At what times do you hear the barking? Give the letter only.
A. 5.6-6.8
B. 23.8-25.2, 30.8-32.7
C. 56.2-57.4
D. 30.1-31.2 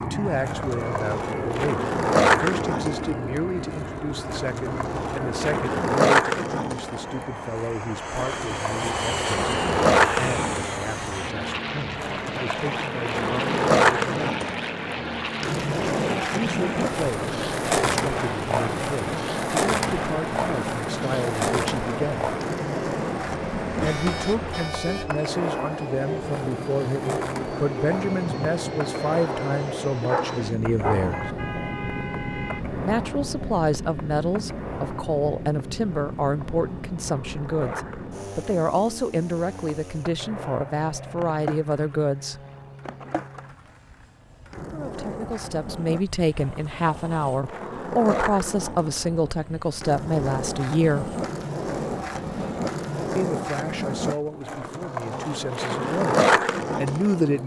D.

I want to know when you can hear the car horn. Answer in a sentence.
You can hear the car horn from 23.8 to 25.2 s and from 30.8 to 32.7 s.